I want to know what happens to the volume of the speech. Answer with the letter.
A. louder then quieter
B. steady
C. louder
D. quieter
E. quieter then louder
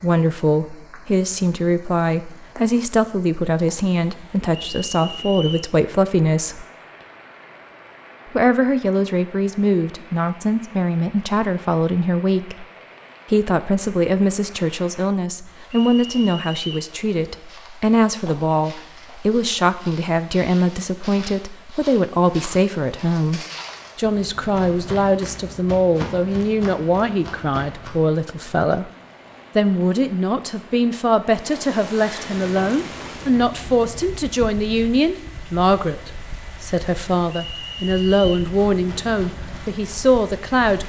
B.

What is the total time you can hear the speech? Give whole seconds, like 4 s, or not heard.
38 s.